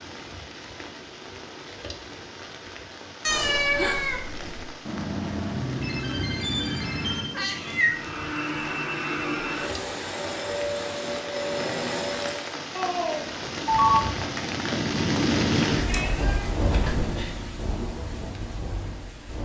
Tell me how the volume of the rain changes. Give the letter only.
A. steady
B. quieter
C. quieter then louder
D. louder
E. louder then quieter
D.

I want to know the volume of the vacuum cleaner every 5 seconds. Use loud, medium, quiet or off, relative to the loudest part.
off, loud, loud, off.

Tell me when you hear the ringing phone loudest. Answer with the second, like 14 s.
14 s.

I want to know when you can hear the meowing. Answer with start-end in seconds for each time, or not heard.
3.2-4.7, 7.3-8.1, 15.8-17.3.